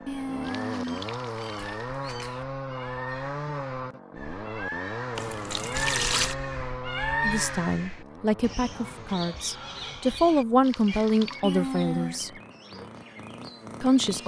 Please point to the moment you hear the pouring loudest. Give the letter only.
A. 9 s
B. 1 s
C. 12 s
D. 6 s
D.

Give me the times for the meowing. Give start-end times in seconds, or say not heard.
0.1-2.5, 11.4-12.2.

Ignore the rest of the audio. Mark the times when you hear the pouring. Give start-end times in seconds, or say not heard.
0.4-1.9, 5.2-6.3, 10.6-11.4.